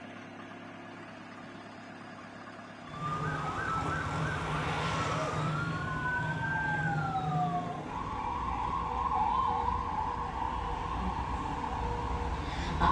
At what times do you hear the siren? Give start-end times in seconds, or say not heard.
2.9-12.8.